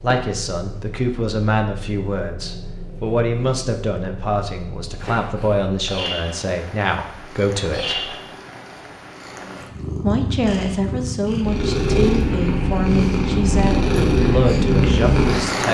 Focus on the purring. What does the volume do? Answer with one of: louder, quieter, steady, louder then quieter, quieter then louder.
louder.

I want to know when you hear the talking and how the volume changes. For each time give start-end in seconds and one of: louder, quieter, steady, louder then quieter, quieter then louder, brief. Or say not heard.
0.0-8.1 steady
10.0-15.6 steady.